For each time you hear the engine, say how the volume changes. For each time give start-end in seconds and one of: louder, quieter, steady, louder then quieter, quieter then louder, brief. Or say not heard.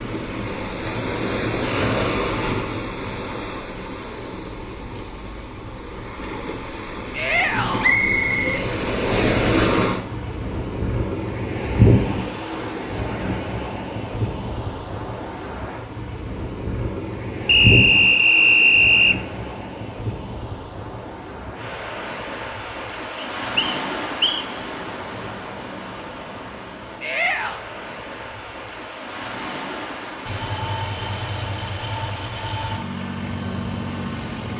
30.2-34.5 steady.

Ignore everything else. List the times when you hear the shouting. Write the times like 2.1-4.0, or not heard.
7.1-8.0, 27.0-27.6.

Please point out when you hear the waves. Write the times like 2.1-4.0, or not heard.
0.0-34.5.